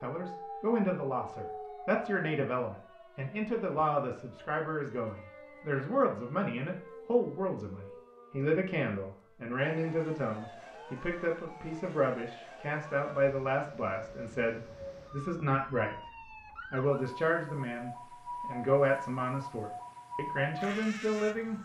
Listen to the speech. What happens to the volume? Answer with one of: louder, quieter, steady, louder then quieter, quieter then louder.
steady.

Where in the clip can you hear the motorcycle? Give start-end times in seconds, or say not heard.
not heard.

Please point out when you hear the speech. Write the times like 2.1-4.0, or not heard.
0.0-15.9, 16.7-21.6.